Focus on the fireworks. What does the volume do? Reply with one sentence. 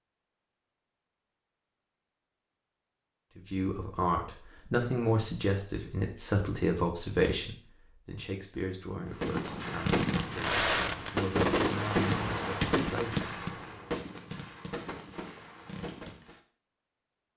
The volume of the fireworks goes down.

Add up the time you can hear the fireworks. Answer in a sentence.
The fireworks can be heard for 7 seconds in total.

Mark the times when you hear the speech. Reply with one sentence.
The speech can be heard from 3.4 to 13.8 s.